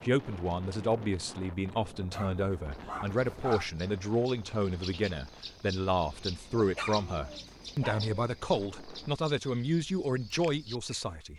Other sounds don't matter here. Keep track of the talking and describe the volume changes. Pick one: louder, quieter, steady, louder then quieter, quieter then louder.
steady.